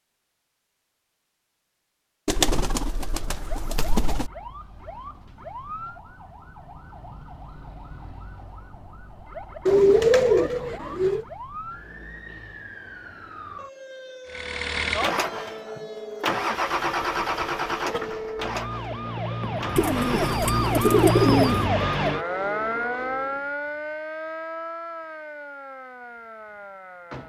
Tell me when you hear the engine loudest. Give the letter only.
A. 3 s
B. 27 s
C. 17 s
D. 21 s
C.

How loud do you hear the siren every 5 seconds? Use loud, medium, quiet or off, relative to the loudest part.
quiet, quiet, quiet, medium, loud, quiet.